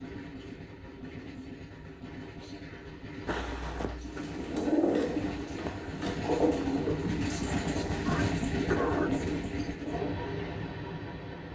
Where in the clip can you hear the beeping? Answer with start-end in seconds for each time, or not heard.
not heard.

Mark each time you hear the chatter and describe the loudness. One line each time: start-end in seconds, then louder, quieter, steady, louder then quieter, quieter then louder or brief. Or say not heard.
not heard.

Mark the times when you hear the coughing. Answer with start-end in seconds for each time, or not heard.
3.2-4.2, 8.1-9.1.